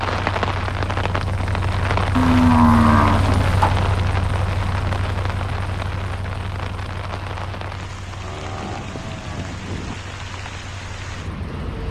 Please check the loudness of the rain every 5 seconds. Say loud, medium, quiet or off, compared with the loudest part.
loud, medium, medium.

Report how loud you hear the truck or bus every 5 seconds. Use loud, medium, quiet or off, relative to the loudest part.
loud, medium, quiet.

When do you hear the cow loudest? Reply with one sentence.
The volume of the cow peaks at 3 seconds.